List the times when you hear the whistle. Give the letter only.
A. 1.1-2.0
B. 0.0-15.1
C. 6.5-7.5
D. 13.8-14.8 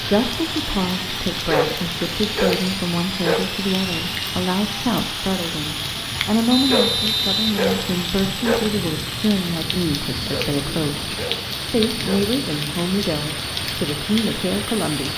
C.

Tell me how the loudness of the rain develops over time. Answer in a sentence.
The loudness of the rain stays about the same.